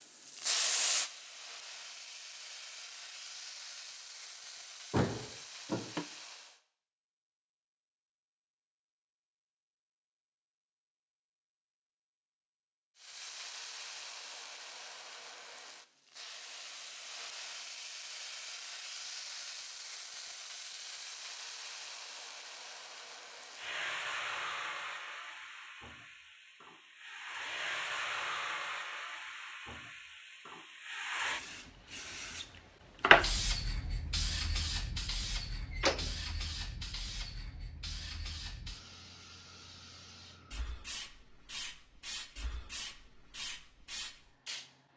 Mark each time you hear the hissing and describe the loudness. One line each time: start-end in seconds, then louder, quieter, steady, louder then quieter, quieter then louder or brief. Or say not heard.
0.2-6.6 quieter
12.9-44.7 louder then quieter.